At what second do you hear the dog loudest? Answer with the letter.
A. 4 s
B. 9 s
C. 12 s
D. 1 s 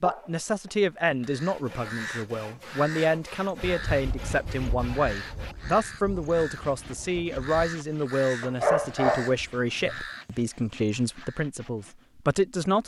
B.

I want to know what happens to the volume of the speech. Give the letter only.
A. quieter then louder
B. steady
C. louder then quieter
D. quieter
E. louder
B.